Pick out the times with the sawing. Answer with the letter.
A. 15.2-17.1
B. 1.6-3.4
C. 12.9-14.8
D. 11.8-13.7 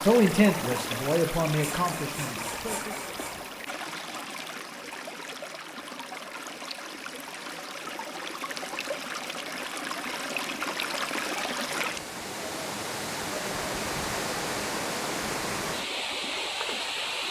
B.